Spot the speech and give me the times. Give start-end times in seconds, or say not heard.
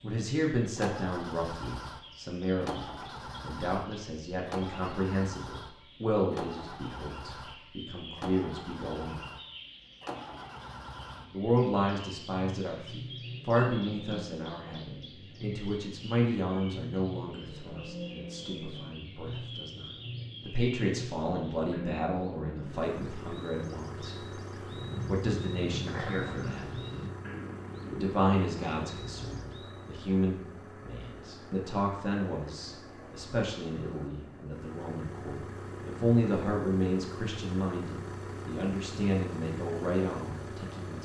0.0-9.2, 11.3-24.1, 25.1-26.6, 27.9-41.0.